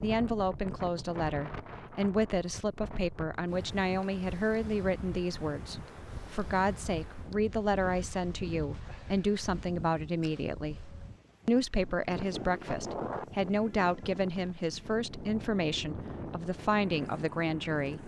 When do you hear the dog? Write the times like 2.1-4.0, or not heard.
not heard.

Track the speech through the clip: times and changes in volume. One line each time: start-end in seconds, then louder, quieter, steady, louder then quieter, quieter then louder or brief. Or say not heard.
0.0-18.0 steady.